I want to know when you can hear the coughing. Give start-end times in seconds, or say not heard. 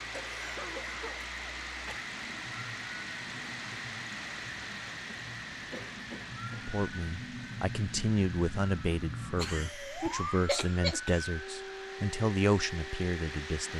0.1-2.0, 4.9-6.8, 9.3-11.2.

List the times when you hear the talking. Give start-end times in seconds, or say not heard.
6.7-13.7.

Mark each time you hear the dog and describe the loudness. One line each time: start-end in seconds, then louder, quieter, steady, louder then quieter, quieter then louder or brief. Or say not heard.
not heard.